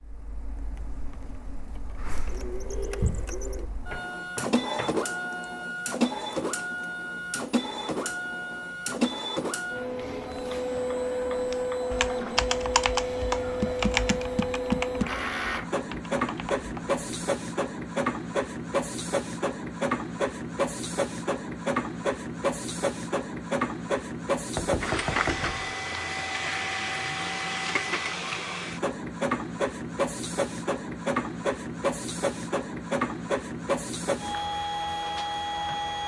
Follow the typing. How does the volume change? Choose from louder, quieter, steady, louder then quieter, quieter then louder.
quieter.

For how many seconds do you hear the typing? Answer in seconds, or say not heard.
6 s.